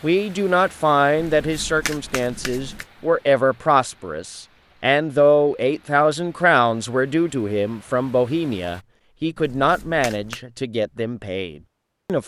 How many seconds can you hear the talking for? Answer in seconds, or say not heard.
12 s.